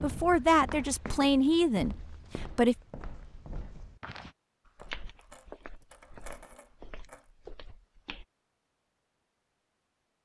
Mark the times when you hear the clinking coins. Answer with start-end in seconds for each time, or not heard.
4.8-7.2.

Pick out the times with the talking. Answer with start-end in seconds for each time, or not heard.
0.0-2.8.